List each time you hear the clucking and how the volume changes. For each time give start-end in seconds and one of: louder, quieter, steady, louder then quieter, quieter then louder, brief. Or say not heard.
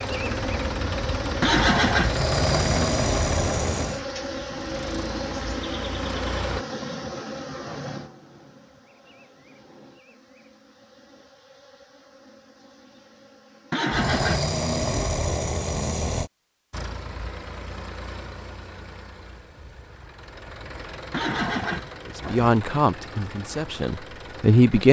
not heard.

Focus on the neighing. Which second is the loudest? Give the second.
2 s.